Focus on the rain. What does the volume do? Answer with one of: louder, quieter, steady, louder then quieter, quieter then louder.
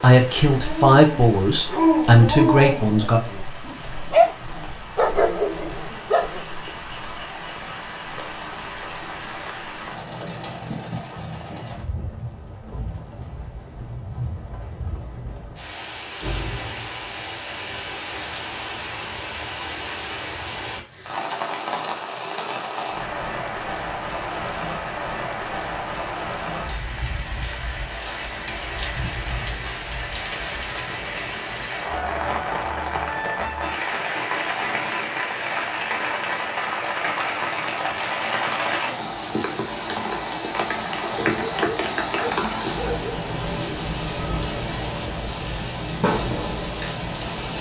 louder.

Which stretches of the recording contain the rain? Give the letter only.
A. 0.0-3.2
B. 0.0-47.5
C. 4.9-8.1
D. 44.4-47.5
B.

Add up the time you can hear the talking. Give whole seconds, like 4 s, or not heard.
3 s.